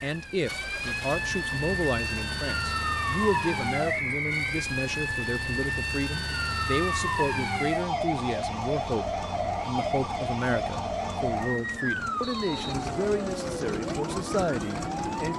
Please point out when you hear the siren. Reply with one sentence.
You can hear the siren from 0.0 to 15.3 s.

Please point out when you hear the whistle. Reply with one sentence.
The whistle can be heard from 3.9 to 4.5 s and from 12.2 to 12.9 s.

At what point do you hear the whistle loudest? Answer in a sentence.
The loudest moment of the whistle is at 4 seconds.